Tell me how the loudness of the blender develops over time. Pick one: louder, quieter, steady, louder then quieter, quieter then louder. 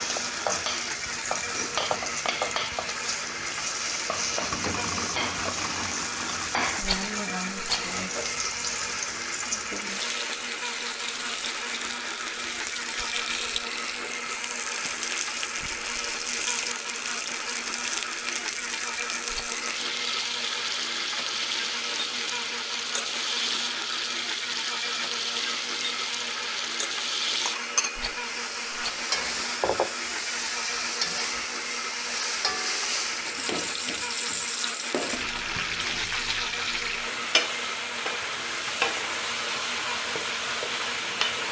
steady.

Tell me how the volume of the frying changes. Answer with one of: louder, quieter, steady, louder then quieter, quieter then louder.
steady.